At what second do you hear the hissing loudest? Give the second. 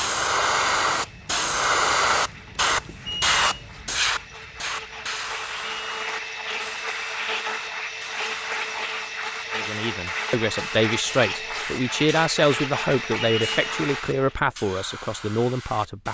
2 s.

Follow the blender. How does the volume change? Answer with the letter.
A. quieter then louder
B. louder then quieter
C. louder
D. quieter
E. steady
C.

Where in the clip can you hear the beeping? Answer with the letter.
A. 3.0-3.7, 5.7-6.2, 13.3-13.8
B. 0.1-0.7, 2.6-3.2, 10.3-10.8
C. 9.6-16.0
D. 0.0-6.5
A.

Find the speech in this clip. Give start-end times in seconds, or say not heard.
9.6-16.0.